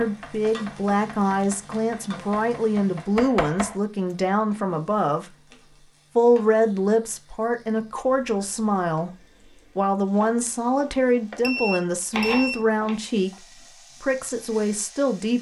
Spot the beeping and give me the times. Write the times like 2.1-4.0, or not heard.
11.4-12.6.